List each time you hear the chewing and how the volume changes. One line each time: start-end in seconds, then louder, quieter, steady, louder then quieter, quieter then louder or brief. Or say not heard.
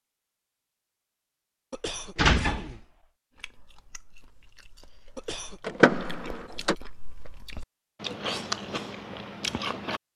3.4-10.0 louder.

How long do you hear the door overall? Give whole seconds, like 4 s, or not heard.
2 s.